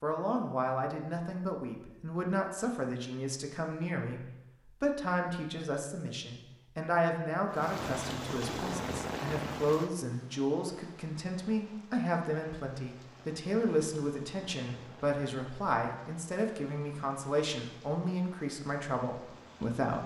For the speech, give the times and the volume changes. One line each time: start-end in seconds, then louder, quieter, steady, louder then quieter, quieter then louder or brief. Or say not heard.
0.0-20.0 steady.